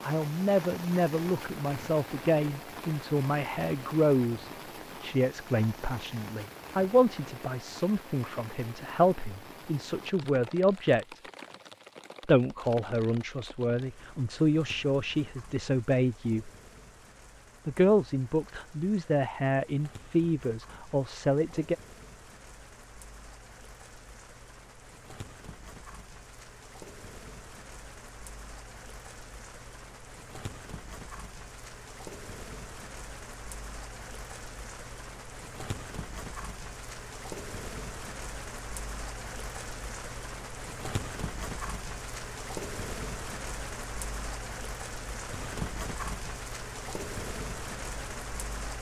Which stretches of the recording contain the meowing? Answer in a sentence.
The meowing can't be heard in this clip.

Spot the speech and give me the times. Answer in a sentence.
The speech can be heard from 0.0 to 11.2 s, from 12.2 to 16.5 s and from 17.6 to 21.8 s.